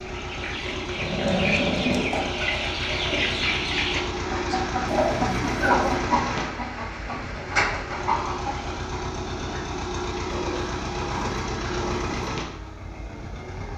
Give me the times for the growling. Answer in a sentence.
You can hear the growling from 0.9 to 2.0 s, from 4.8 to 6.0 s and from 10.3 to 12.3 s.